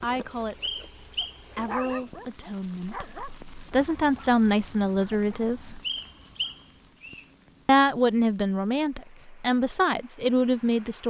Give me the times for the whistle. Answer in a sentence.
The whistle can be heard from 0.6 to 2.0 s and from 5.8 to 7.2 s.